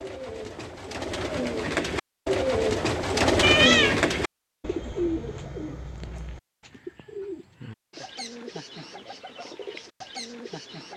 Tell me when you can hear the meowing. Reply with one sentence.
You can hear the meowing from 3.4 to 4.1 s.